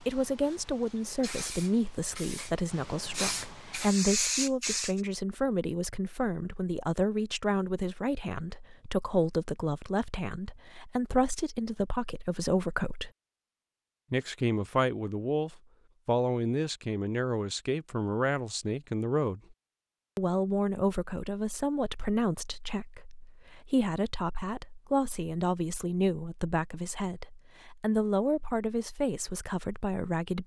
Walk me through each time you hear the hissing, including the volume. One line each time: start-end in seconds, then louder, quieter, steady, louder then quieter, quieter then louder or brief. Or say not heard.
0.0-5.0 louder.